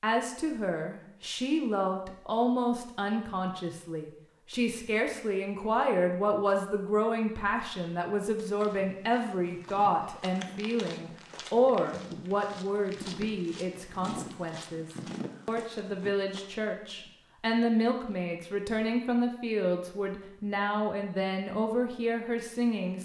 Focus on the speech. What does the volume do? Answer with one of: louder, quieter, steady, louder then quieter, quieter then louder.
steady.